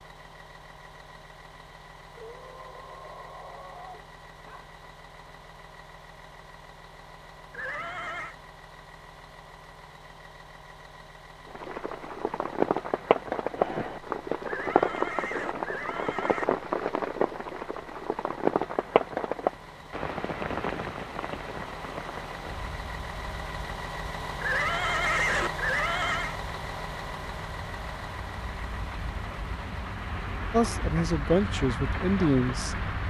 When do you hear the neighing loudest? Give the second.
25 s.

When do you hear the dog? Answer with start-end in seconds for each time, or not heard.
2.1-4.8.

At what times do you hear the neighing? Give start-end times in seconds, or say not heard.
7.5-8.3, 14.4-16.4, 24.4-26.4.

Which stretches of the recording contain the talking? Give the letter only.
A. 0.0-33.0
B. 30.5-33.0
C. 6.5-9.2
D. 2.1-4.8
B.